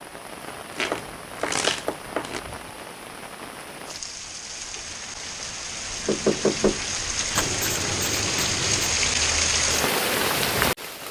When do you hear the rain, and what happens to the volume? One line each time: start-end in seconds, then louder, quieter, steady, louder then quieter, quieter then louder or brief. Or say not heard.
0.0-11.0 louder.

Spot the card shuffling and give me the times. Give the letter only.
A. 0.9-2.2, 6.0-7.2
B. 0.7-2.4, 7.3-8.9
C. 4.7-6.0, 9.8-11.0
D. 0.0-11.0
B.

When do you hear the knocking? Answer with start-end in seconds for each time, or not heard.
0.9-2.2, 6.0-7.2.